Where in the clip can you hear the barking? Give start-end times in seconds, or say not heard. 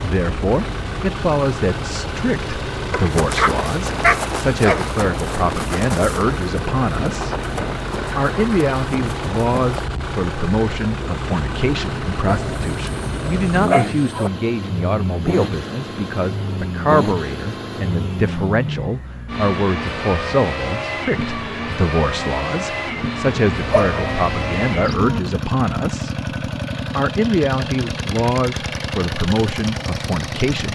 2.9-4.9, 12.2-14.3, 23.2-25.2.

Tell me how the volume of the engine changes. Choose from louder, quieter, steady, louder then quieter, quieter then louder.
steady.